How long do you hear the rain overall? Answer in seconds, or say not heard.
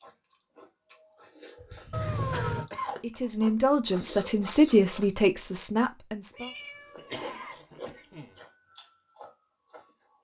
not heard.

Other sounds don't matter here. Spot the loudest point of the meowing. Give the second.
2 s.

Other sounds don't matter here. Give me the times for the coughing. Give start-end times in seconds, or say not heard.
1.6-3.1, 7.0-8.3.